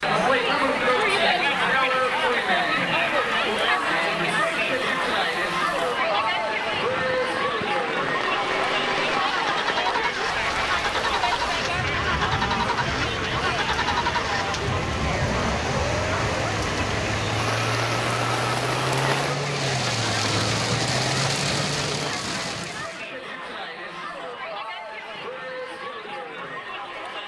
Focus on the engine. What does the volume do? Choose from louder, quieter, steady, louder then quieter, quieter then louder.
steady.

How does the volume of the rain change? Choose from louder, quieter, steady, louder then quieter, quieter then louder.
louder.